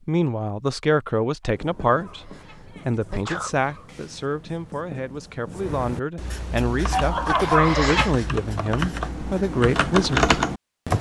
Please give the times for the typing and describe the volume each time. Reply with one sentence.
The typing can be heard from 6.7 to 10.9 s, getting louder.